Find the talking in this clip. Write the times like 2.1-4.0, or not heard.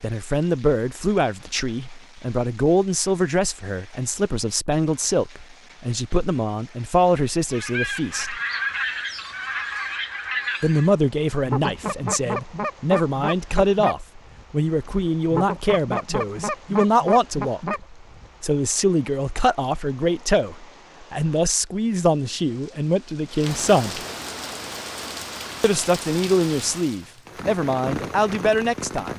0.0-8.4, 10.6-24.0, 25.6-29.1.